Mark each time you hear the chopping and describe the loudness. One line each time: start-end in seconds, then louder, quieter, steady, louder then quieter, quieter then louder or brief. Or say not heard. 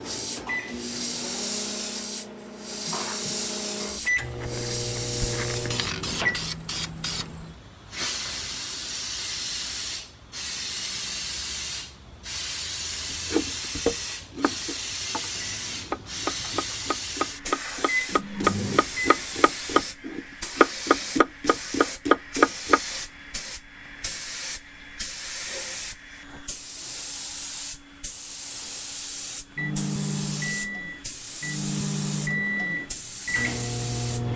13.1-22.8 louder.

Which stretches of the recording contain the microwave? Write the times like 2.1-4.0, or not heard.
0.0-6.4, 15.2-19.4, 29.6-34.3.